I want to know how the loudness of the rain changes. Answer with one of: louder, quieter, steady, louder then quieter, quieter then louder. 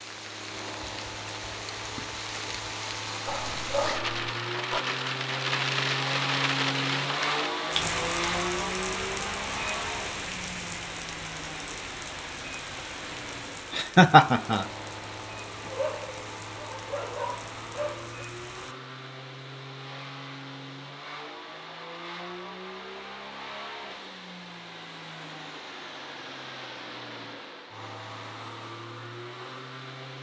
louder then quieter.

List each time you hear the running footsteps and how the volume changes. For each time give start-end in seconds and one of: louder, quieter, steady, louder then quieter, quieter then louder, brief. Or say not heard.
not heard.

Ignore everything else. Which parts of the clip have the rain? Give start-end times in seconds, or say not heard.
0.0-18.8.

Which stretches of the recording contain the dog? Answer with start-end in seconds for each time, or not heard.
3.2-4.8, 15.6-18.1.